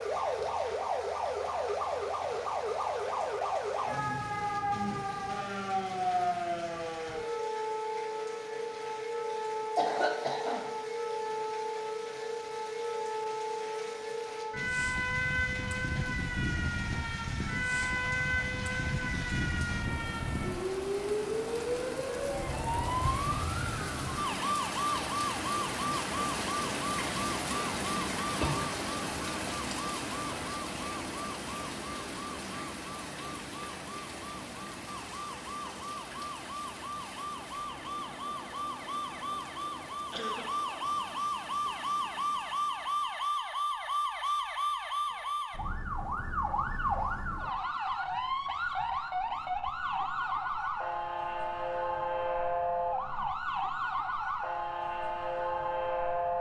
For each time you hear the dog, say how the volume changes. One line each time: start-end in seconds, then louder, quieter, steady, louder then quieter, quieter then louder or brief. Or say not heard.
not heard.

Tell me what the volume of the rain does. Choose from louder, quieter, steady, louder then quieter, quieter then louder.
louder then quieter.